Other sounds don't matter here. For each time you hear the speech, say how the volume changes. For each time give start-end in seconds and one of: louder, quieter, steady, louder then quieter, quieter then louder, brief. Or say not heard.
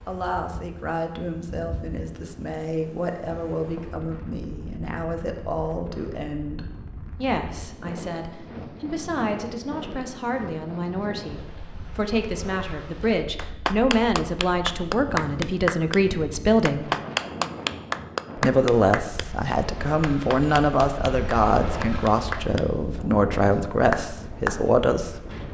0.1-16.9 louder
18.4-25.2 steady.